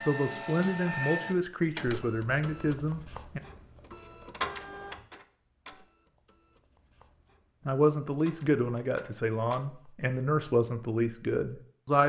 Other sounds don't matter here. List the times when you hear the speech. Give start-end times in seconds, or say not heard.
0.1-3.4, 7.7-12.0.